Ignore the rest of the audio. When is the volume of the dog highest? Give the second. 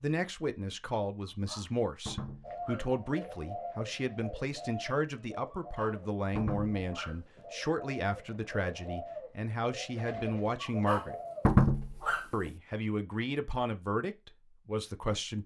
12 s.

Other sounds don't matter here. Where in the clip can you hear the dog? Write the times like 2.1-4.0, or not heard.
1.2-2.9, 5.5-7.4, 10.6-12.5.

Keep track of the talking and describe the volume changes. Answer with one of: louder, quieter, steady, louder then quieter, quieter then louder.
steady.